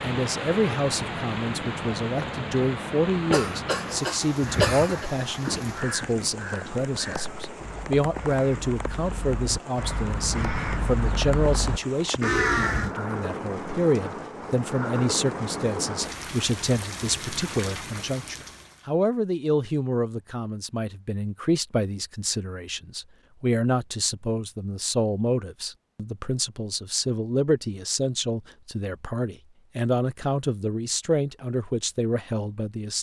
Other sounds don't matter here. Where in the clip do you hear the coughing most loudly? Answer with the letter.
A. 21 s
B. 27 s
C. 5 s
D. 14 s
C.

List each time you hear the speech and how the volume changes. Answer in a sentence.
The speech can be heard from 0.0 to 32.9 s, at a steady volume.